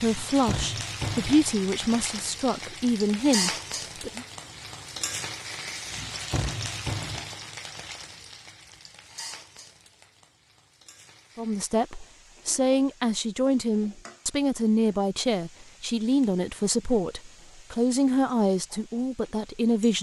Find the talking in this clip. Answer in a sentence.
The talking can be heard from 0.0 to 4.2 s and from 11.3 to 19.9 s.